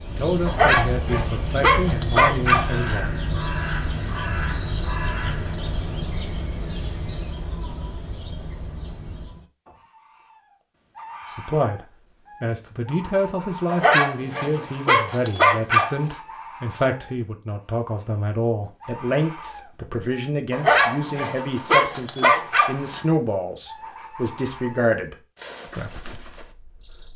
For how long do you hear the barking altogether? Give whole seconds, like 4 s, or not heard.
7 s.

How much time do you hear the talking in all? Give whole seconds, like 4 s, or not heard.
19 s.